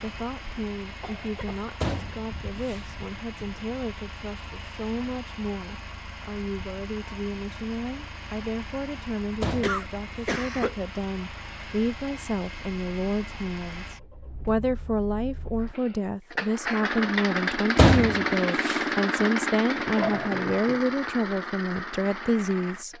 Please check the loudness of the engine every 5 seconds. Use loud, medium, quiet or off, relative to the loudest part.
quiet, quiet, quiet, loud, medium.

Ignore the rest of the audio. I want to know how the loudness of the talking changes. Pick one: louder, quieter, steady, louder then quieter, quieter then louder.
louder.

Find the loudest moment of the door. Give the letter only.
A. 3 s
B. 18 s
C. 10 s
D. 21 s
B.